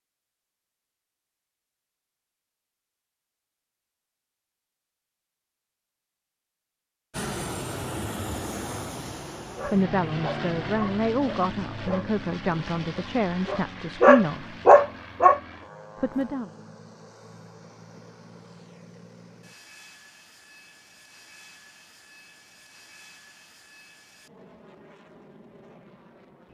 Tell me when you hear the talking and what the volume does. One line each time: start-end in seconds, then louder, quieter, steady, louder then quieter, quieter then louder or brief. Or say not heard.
9.7-14.6 steady
16.0-16.5 brief.